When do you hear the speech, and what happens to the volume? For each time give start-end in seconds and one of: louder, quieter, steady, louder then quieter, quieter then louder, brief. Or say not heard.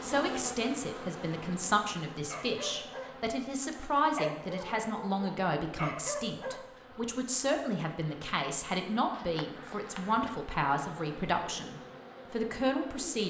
0.0-13.2 steady.